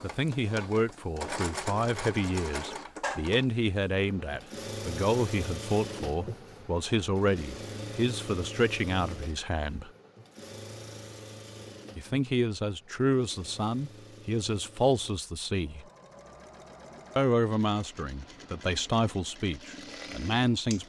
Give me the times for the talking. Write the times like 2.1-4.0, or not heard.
0.0-9.9, 11.9-15.8, 17.1-20.8.